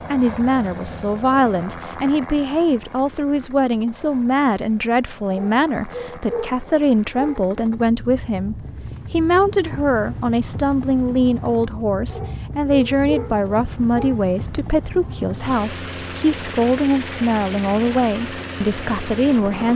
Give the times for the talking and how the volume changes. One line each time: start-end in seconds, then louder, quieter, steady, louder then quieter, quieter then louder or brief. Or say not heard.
0.1-19.7 steady.